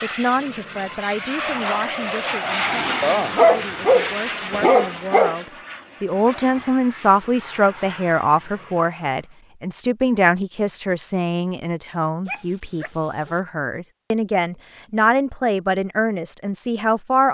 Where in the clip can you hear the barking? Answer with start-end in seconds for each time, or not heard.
3.0-5.3, 12.2-13.3.